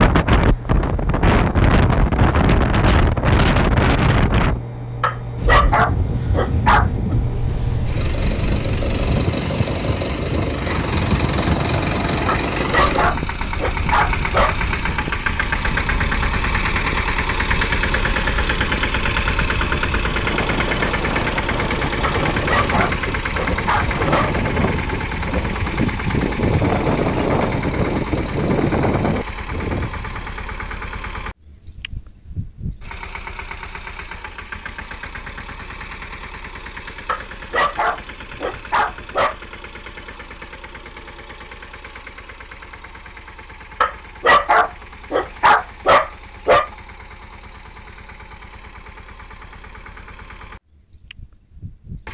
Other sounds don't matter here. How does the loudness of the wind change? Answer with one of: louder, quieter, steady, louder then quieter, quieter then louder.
quieter then louder.